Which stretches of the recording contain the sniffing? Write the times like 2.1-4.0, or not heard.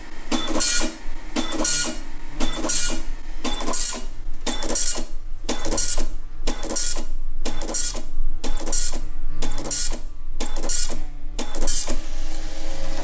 not heard.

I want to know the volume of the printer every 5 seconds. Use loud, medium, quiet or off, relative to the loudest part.
loud, loud, medium.